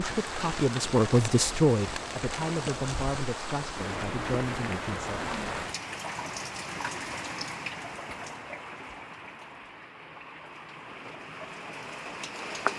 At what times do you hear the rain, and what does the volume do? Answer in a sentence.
The rain can be heard from 0.0 to 12.7 s, getting quieter.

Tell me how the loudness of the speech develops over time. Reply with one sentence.
The loudness of the speech goes down.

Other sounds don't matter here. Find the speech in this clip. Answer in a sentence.
The speech can be heard from 0.0 to 5.2 s.